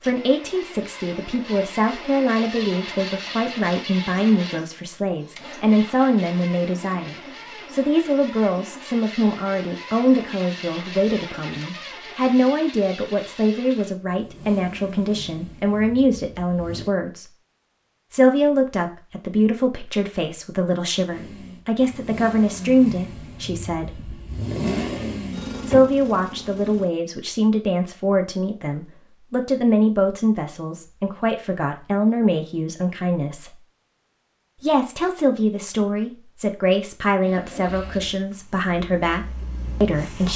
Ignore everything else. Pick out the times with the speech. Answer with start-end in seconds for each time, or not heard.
0.0-17.3, 18.1-24.1, 25.6-33.6, 34.6-40.3.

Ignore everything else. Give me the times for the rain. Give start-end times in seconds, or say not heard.
not heard.